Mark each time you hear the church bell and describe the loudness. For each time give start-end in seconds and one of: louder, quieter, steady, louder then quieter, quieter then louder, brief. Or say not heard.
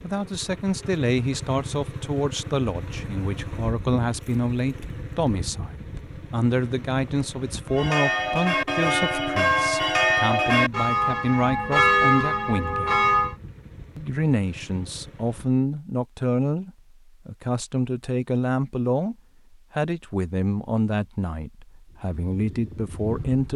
7.7-13.3 steady.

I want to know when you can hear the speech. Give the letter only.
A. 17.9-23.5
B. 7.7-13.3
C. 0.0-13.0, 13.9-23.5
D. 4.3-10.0
C.